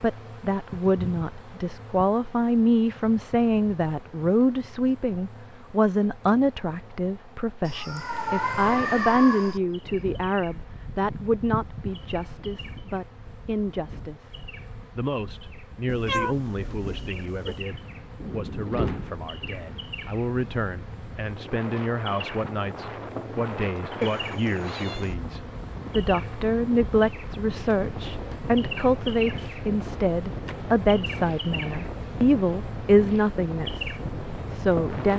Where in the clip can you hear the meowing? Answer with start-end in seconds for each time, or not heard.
7.7-9.6, 15.8-17.7, 24.0-25.1.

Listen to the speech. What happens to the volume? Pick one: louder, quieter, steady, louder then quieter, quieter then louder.
quieter then louder.